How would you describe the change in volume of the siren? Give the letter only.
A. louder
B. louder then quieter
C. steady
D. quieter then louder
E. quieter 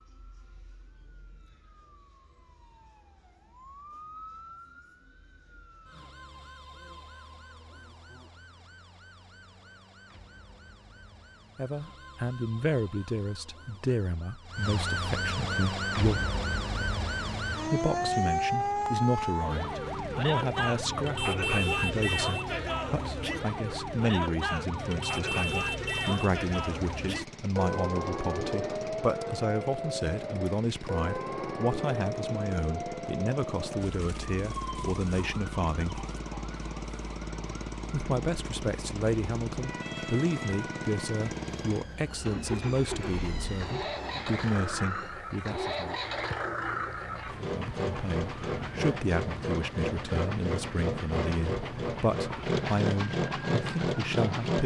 B.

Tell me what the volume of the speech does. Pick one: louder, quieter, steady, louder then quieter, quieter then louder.
steady.